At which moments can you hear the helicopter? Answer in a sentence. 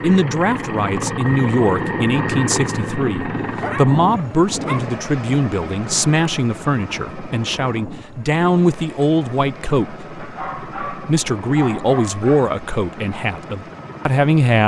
You can hear the helicopter from 0.0 to 14.6 s.